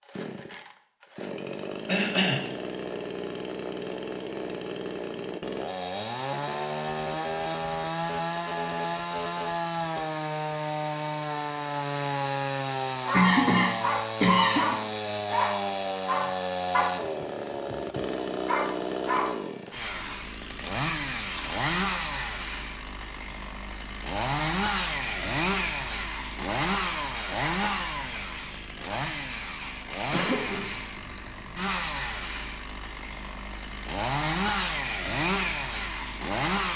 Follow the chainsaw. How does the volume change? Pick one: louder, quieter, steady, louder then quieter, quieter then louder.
steady.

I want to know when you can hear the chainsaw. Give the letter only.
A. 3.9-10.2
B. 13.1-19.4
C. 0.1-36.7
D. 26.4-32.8
C.